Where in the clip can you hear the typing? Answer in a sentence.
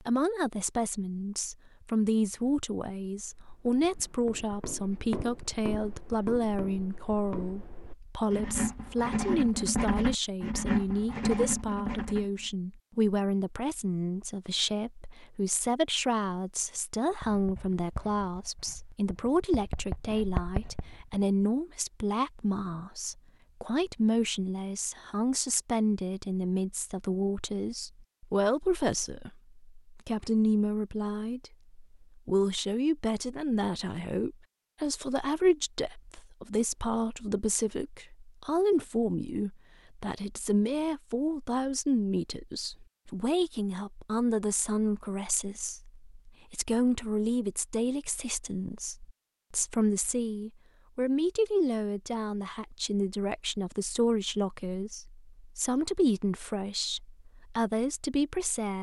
You can't hear the typing here.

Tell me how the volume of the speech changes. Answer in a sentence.
The volume of the speech stays about the same.